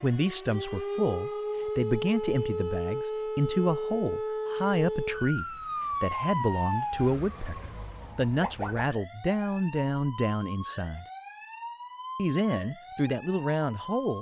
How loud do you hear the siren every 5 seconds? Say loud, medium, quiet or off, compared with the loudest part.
loud, loud, medium.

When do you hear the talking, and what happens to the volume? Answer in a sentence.
You can hear the talking from 0.0 to 11.1 s, at a steady volume; and briefly from 12.2 to 14.1 s.